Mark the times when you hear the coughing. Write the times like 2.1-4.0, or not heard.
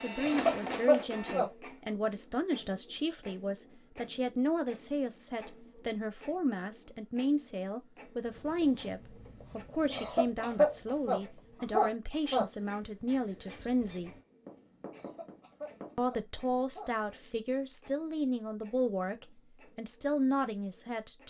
0.1-1.5, 9.8-12.4, 14.9-16.9.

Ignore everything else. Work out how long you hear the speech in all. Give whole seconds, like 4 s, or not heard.
19 s.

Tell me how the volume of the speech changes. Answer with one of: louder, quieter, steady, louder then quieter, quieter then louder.
steady.